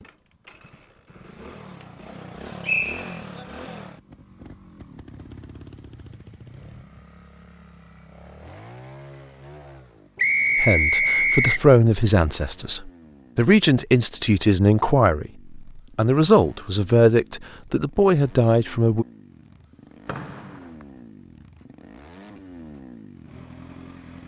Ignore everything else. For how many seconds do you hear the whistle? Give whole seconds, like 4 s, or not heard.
3 s.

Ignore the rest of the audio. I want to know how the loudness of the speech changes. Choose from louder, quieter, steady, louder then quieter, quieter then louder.
steady.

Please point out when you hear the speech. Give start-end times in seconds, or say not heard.
10.6-19.1.